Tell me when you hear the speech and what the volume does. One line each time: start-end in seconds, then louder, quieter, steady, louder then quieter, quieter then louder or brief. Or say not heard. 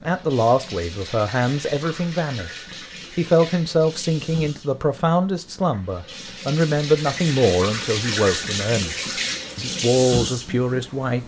0.0-11.2 steady.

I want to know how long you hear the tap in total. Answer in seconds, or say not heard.
11 s.